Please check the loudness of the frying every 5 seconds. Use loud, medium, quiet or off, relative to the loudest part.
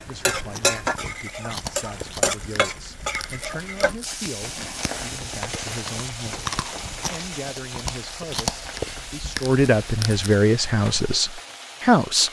loud, medium, medium.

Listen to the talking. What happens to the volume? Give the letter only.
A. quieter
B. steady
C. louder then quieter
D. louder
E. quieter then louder
D.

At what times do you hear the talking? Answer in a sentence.
You can hear the talking from 0.0 to 12.2 s.